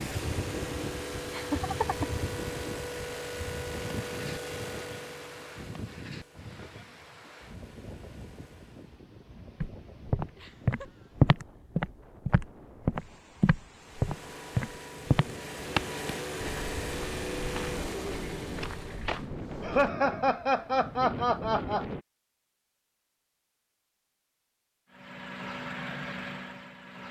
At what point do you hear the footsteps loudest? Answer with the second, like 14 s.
11 s.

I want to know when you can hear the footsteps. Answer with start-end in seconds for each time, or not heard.
9.6-19.9.